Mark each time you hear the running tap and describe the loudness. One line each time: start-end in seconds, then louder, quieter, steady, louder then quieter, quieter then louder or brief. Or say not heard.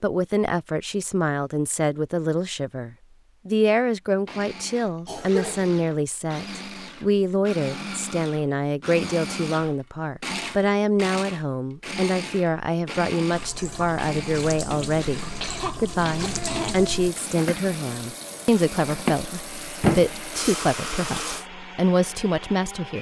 13.3-21.4 louder.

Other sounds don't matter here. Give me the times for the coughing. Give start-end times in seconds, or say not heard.
5.0-5.8, 15.4-17.1.